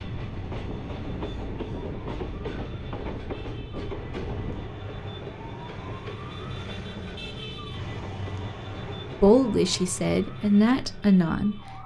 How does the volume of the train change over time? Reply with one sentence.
The loudness of the train goes down.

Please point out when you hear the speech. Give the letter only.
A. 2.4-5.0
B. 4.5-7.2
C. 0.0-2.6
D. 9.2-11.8
D.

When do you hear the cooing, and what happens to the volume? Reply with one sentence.
The cooing can't be heard in this clip.